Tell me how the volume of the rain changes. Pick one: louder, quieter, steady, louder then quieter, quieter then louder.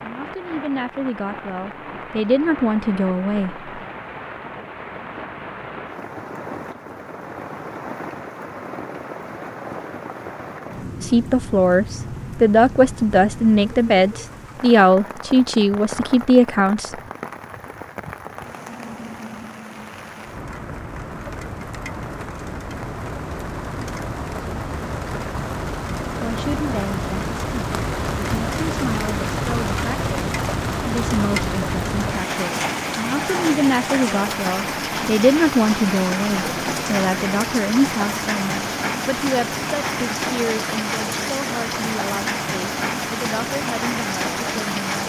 louder.